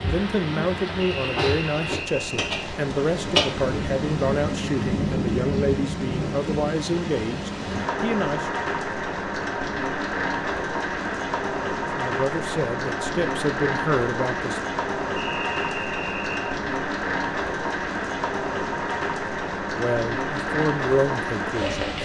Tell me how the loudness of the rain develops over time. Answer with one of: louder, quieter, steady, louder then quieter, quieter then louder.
steady.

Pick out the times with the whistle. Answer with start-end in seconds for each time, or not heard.
1.0-2.5, 15.2-16.6.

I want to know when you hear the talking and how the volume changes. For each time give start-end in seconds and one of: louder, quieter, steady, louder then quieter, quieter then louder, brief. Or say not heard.
0.0-8.5 steady
11.9-14.6 brief
19.8-21.9 brief.